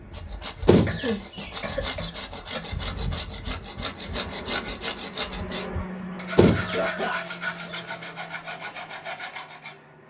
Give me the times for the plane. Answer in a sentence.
You can hear the plane from 0.0 to 10.0 s.